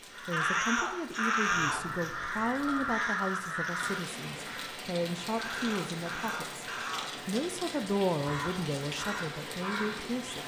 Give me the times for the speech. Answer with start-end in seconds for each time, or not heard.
0.2-6.7, 7.2-10.4.